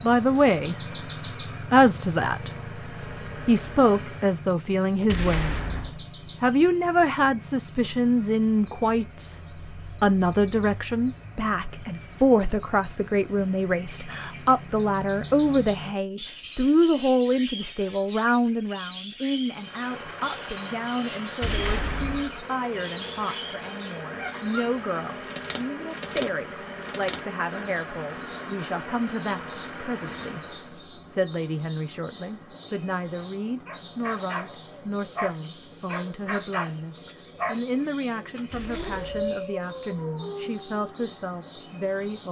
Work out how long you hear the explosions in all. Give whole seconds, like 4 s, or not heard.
3 s.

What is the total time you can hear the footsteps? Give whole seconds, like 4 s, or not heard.
not heard.